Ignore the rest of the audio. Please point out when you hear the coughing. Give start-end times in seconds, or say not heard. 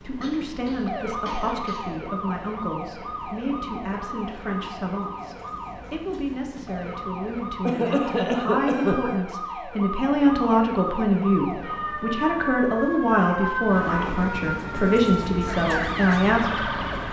0.2-1.9, 7.7-9.0, 13.2-14.2.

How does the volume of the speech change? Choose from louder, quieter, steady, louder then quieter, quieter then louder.
louder.